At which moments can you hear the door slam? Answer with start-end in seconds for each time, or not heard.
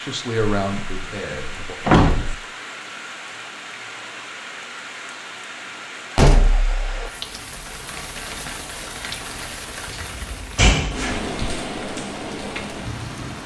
0.6-2.4, 6.2-7.1, 9.8-11.2.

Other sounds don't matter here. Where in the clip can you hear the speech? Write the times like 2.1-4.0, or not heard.
0.0-1.8.